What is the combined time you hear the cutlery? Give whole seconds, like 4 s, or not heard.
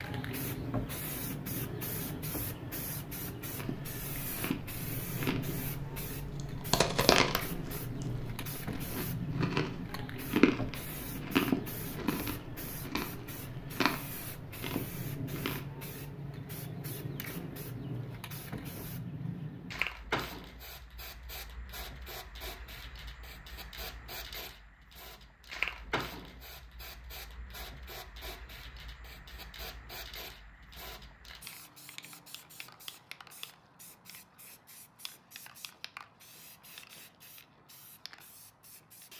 not heard.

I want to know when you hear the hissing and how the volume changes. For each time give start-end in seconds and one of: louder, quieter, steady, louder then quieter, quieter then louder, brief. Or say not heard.
0.0-39.1 quieter.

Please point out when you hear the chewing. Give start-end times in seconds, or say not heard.
3.5-15.6.